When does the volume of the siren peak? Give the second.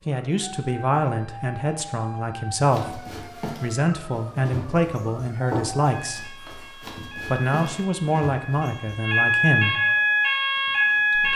10 s.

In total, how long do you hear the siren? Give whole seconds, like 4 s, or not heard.
11 s.